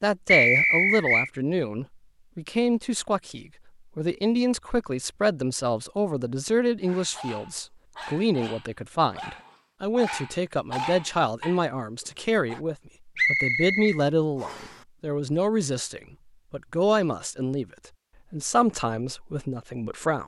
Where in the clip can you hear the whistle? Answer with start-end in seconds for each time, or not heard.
0.2-1.3, 13.2-14.7.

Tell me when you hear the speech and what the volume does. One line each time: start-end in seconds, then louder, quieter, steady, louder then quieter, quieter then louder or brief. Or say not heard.
0.0-17.6 steady
18.3-20.2 brief.